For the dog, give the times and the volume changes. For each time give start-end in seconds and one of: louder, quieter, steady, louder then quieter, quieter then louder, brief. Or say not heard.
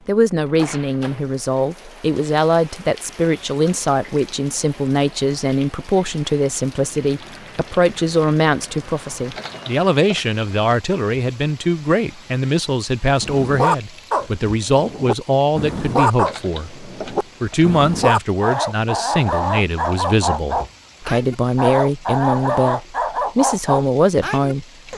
13.2-24.9 steady.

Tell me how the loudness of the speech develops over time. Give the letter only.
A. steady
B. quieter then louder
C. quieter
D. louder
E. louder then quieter
A.